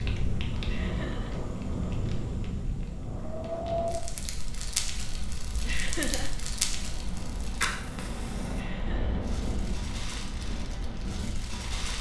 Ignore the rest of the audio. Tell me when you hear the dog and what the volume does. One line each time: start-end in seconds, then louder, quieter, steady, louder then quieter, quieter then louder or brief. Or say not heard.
not heard.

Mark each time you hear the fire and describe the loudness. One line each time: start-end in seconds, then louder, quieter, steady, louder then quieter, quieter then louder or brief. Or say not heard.
0.0-11.9 quieter.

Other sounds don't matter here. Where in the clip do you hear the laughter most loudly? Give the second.
6 s.